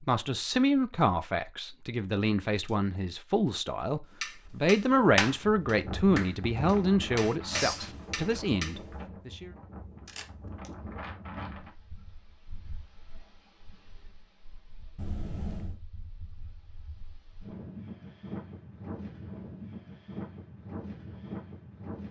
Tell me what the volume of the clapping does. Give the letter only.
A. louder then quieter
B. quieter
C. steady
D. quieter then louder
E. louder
D.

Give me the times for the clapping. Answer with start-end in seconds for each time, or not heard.
4.2-8.8.